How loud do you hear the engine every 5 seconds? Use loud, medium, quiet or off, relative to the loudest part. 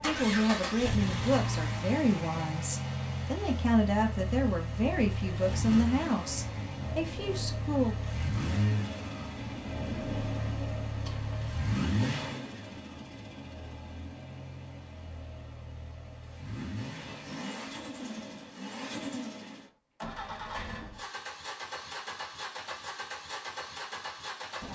loud, loud, loud, medium, medium.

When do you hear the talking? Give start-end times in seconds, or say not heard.
0.0-8.0.